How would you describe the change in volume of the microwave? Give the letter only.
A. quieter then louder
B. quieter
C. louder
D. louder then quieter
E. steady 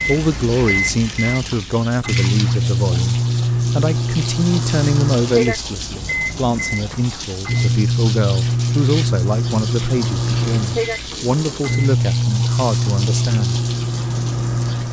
E.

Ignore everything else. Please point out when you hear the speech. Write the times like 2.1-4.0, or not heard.
0.1-13.6.